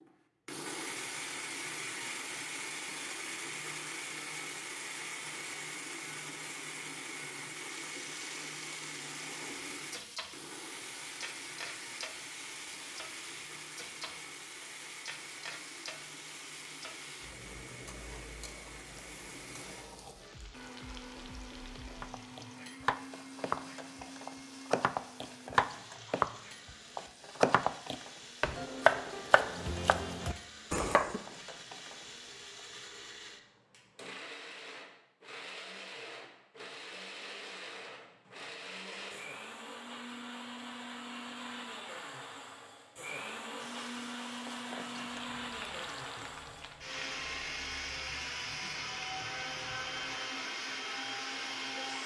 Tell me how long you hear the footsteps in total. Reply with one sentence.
You can't hear the footsteps here.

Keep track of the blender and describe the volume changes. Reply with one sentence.
The volume of the blender goes down, then up.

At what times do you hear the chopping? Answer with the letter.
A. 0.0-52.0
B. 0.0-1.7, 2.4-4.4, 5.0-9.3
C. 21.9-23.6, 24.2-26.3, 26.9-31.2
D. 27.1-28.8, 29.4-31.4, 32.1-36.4
C.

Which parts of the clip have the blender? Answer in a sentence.
You can hear the blender from 0.0 to 52.0 s.